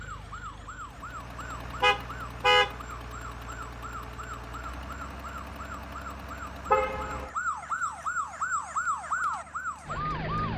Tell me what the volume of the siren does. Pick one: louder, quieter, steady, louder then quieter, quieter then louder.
louder.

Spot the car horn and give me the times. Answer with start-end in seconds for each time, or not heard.
1.8-2.8, 6.7-7.3.